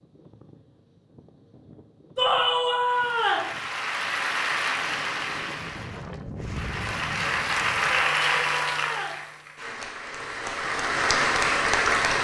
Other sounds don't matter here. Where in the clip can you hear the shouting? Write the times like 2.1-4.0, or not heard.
2.1-3.5, 7.9-9.2.